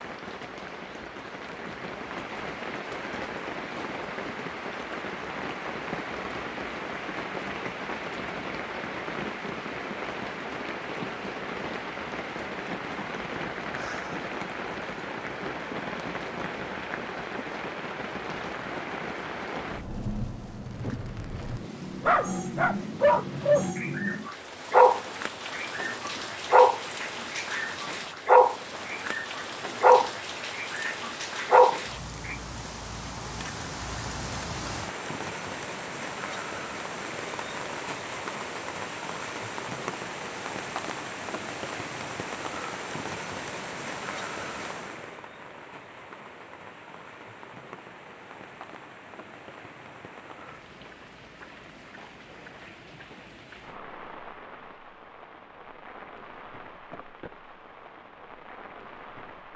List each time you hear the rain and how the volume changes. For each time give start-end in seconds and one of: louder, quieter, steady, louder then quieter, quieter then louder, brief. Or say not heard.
0.0-59.5 quieter.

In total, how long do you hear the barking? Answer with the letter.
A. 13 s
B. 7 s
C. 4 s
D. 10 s
D.